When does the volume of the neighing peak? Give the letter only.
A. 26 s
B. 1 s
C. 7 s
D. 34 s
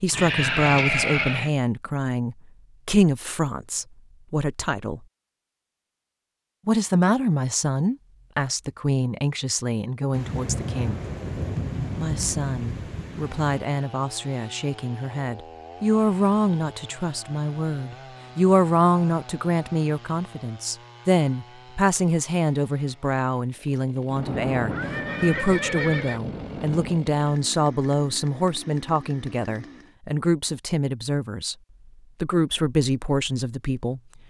B.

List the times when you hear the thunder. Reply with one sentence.
The thunder can be heard from 10.1 to 13.6 s and from 24.1 to 27.0 s.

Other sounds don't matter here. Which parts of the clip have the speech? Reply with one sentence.
The speech can be heard from 0.0 to 5.0 s, from 6.7 to 11.0 s, from 11.9 to 31.6 s and from 32.2 to 34.0 s.